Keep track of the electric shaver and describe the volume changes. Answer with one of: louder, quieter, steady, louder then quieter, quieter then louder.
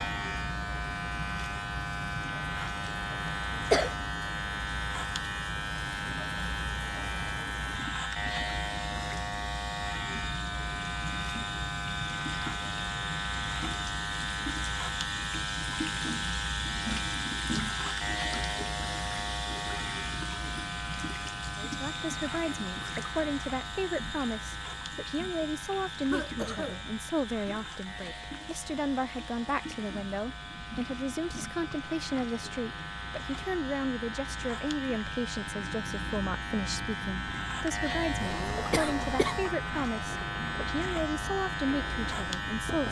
quieter then louder.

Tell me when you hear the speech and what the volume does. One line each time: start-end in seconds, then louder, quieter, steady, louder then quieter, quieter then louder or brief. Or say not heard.
21.6-42.8 steady.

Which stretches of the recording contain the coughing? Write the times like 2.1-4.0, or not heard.
2.9-4.0, 26.1-26.9, 38.2-39.4.